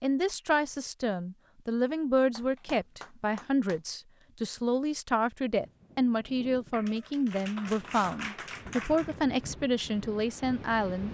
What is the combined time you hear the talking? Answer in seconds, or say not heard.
11 s.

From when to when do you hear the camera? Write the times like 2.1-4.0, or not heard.
not heard.